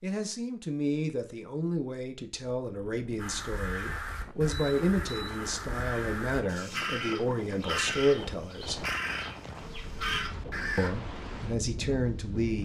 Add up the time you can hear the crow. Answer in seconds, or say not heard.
8 s.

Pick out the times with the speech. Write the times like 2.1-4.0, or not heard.
0.0-8.8, 10.8-12.6.